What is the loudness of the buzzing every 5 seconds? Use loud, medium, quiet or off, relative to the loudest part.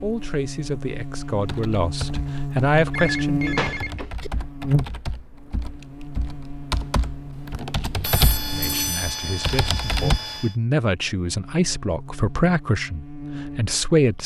loud, medium, medium.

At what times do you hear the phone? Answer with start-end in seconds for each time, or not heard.
2.9-4.3, 8.0-10.6.